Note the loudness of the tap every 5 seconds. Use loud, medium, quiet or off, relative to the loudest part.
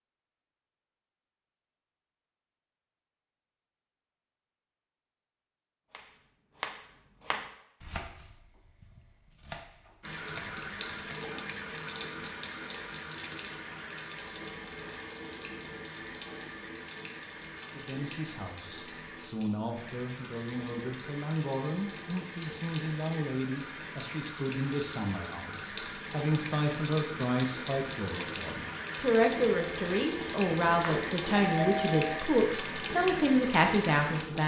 off, off, medium, medium, medium, loud, loud.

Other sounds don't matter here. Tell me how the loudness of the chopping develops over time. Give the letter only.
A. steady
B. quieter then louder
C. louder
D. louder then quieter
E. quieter
B.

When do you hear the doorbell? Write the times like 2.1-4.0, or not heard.
30.7-32.1.